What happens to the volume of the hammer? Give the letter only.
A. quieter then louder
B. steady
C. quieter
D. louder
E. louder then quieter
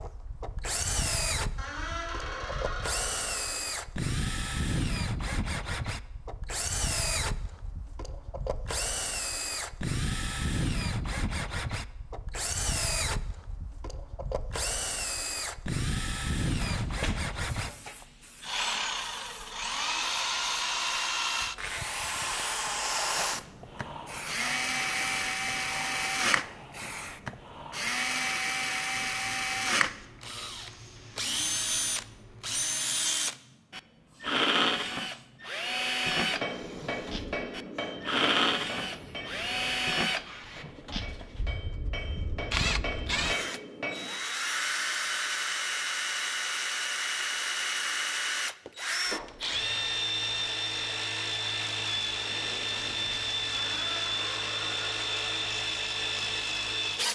A.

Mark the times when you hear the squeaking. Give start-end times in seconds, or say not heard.
1.6-3.6, 53.5-55.5.